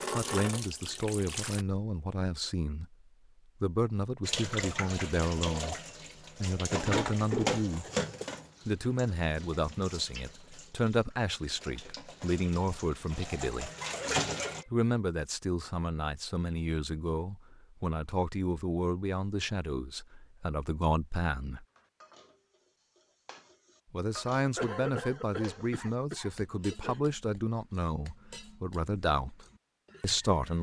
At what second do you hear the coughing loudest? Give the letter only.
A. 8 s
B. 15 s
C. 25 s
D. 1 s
C.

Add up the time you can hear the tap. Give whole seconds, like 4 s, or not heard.
12 s.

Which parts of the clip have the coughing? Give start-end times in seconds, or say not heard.
7.1-8.4, 13.8-14.7, 24.6-27.0.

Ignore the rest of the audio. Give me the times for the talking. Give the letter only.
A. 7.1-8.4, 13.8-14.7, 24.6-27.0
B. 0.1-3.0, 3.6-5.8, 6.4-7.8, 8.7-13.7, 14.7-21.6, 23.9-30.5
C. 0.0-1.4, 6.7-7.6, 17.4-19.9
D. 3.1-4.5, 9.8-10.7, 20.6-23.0
B.